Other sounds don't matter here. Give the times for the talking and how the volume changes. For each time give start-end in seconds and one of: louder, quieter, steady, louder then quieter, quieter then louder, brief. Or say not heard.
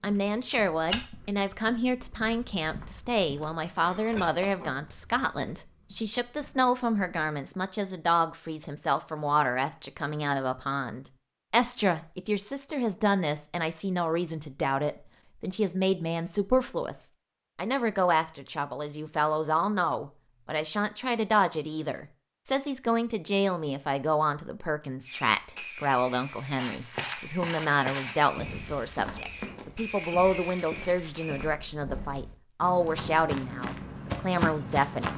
0.0-35.1 steady.